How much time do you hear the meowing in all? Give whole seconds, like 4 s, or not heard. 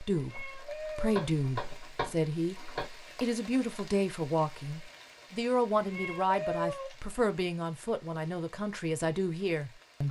3 s.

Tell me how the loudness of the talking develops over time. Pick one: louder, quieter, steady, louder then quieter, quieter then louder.
steady.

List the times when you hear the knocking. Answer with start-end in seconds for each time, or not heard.
0.8-2.9.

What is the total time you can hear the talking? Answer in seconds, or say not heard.
10 s.